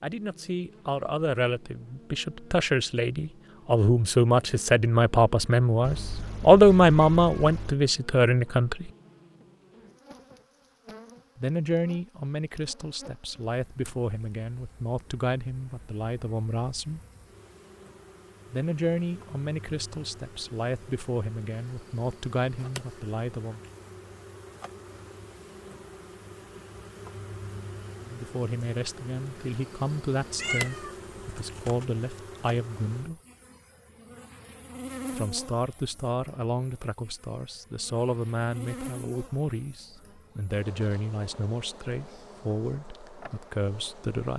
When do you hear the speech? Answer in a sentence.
You can hear the speech from 0.0 to 8.9 s, from 11.3 to 17.0 s, from 18.5 to 23.6 s, from 28.1 to 33.2 s and from 35.1 to 44.3 s.